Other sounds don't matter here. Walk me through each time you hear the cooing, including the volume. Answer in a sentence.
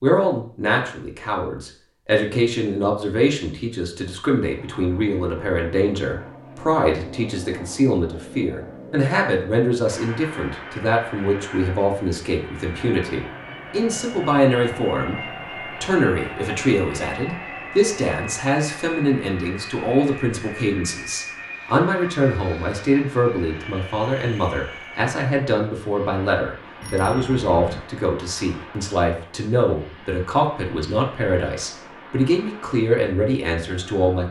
The cooing can't be heard in this clip.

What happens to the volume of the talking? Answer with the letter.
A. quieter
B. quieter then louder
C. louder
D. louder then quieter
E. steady
E.